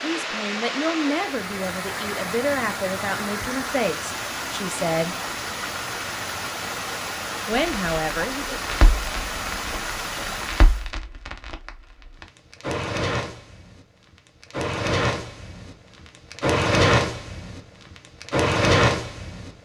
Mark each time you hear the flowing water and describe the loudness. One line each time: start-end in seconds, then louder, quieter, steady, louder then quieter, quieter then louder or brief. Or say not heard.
0.0-10.9 steady.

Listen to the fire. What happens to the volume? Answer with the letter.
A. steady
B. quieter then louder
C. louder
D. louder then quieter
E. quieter
C.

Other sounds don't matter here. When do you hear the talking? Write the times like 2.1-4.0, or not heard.
0.0-5.2, 7.5-8.6.